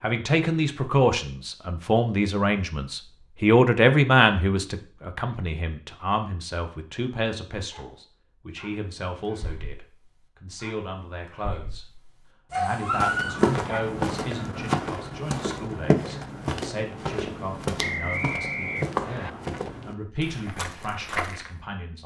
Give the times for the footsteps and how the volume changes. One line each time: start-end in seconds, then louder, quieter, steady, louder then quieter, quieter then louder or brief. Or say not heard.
12.8-21.6 quieter.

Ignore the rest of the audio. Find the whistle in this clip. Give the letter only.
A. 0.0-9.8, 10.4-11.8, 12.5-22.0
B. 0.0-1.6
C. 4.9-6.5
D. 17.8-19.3
D.